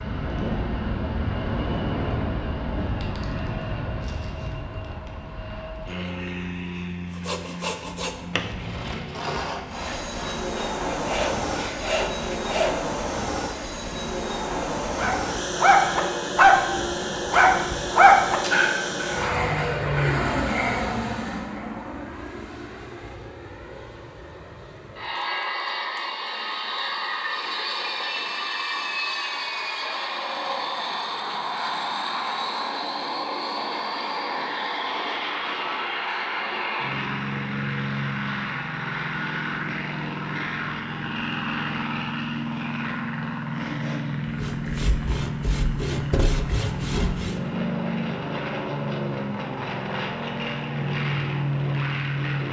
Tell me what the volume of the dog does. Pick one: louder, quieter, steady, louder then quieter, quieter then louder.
quieter.